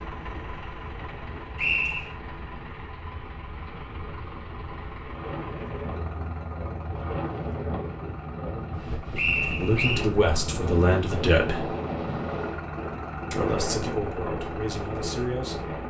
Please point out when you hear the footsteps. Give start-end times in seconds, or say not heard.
not heard.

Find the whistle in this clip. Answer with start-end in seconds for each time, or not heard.
1.6-2.1, 9.2-10.1.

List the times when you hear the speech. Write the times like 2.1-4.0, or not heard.
9.6-11.7, 13.3-15.8.